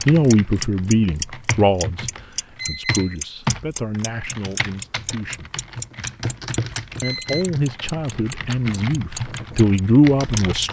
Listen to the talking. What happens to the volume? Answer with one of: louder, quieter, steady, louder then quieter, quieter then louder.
quieter then louder.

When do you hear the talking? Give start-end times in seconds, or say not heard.
0.1-5.5, 7.0-10.6.